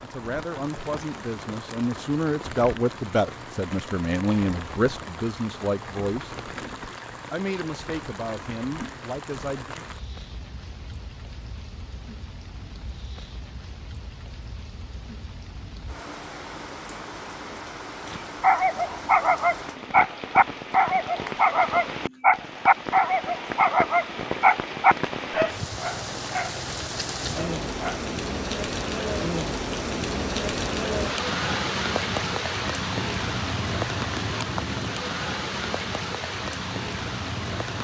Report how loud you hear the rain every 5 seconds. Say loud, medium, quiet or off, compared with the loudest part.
medium, medium, quiet, medium, medium, loud, loud, loud.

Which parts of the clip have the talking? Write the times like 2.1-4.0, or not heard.
0.0-6.3, 7.3-9.8.